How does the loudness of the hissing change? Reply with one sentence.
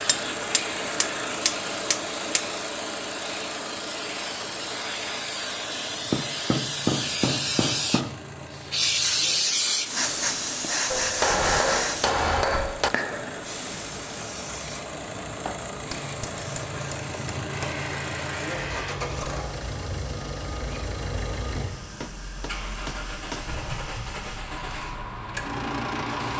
The loudness of the hissing goes up, then down.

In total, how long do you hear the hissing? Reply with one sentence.
The hissing can be heard for 26 seconds in total.